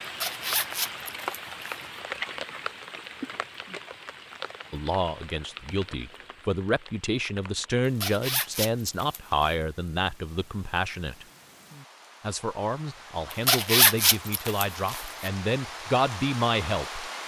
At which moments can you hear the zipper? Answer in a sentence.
The zipper can be heard from 0.2 to 1.8 s, from 8.0 to 9.6 s and from 13.3 to 15.3 s.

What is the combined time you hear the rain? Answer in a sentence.
The rain can be heard for 17 seconds in total.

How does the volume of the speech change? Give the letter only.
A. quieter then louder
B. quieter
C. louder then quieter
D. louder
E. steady
E.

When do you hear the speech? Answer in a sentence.
The speech can be heard from 4.7 to 11.2 s and from 12.2 to 17.1 s.